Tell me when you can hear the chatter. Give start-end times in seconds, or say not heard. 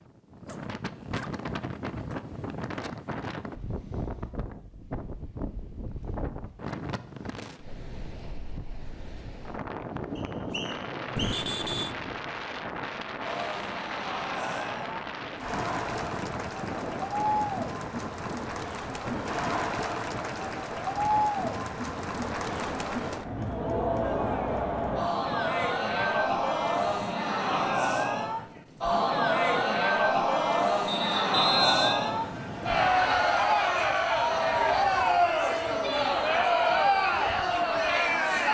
13.2-38.4.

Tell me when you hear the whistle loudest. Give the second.
32 s.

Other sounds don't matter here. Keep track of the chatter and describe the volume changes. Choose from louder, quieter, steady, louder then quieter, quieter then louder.
louder.